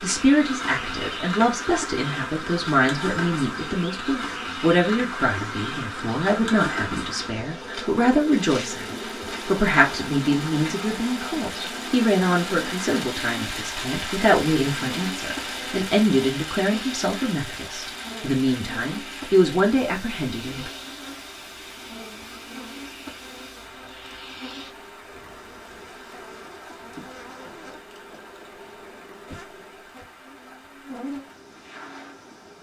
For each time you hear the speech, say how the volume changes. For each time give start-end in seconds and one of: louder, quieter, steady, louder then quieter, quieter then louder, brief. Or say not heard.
0.0-20.7 steady.